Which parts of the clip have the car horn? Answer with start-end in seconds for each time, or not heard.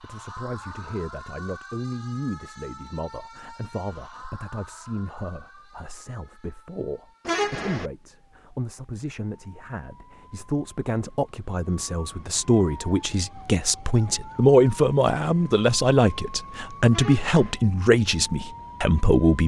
7.2-7.9, 16.9-17.6.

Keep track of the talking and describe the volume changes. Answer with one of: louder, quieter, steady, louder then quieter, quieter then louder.
louder.